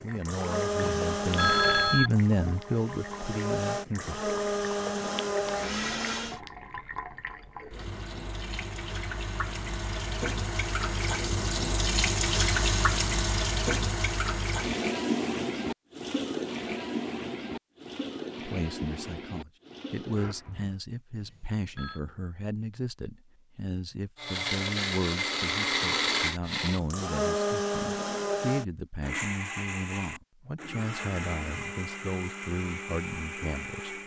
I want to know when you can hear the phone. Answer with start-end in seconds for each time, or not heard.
0.8-2.1, 21.2-22.0.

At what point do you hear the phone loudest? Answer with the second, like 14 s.
2 s.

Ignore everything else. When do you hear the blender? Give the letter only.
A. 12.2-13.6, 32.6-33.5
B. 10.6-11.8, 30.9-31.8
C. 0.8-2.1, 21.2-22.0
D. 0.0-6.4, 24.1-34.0
D.